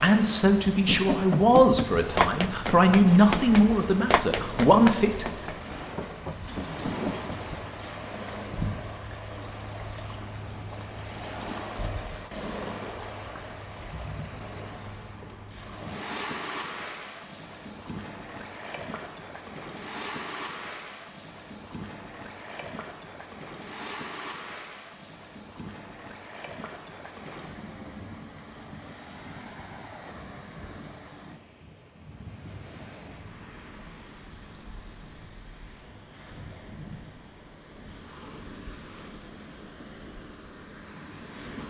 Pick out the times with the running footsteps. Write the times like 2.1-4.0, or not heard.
0.8-7.4.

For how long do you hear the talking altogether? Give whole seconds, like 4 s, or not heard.
5 s.